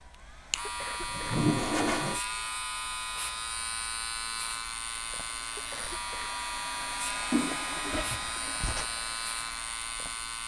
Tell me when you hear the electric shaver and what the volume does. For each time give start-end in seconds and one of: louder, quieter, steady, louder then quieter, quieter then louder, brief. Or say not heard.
0.0-10.4 steady.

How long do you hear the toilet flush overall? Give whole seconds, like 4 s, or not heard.
3 s.